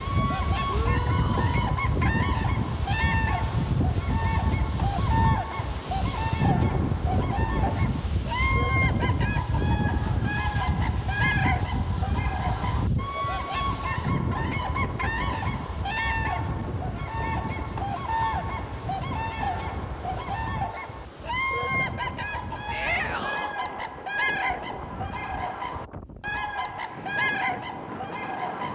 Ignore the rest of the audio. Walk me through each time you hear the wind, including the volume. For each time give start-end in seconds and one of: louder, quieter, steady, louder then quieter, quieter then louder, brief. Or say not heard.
0.0-28.7 quieter.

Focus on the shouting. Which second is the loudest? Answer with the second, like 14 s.
23 s.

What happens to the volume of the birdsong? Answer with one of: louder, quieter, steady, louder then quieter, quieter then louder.
steady.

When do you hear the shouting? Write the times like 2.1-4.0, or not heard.
0.7-1.7, 22.7-23.6.